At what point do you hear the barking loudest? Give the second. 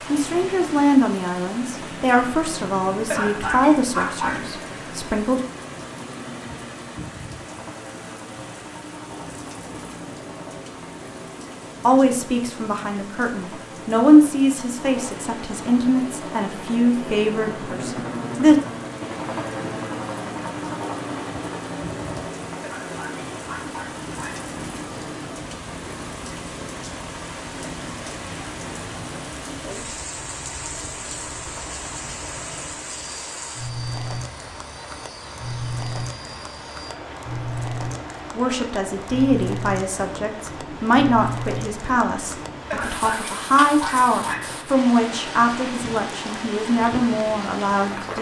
4 s.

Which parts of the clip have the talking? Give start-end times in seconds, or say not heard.
0.1-5.4, 11.8-18.6, 38.4-48.1.